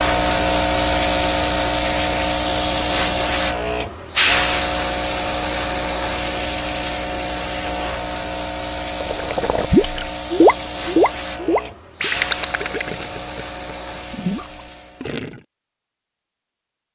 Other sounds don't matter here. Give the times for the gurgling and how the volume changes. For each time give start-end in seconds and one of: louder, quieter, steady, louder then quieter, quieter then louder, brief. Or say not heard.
9.0-15.4 quieter then louder.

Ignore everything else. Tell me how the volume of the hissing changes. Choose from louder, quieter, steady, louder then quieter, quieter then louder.
quieter.